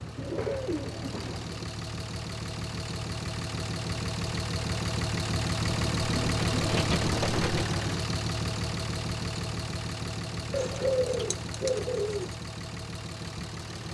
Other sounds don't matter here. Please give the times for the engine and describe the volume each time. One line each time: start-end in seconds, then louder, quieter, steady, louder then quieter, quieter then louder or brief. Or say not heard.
0.0-13.8 louder then quieter.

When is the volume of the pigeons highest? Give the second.
11 s.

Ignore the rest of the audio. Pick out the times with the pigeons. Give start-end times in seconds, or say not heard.
0.1-1.7, 5.7-7.7, 10.5-12.3.